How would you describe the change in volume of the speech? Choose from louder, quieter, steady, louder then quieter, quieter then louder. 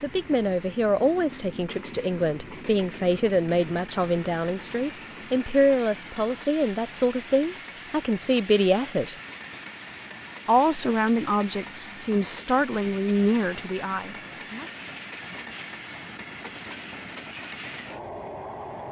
steady.